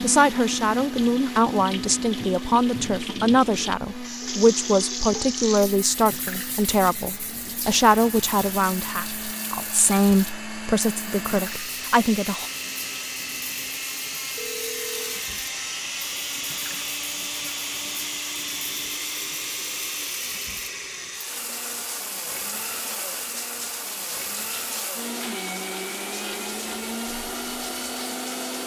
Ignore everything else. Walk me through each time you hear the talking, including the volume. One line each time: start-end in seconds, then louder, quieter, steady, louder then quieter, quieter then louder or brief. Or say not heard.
0.0-12.4 steady.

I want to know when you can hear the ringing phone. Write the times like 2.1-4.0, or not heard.
14.3-15.2.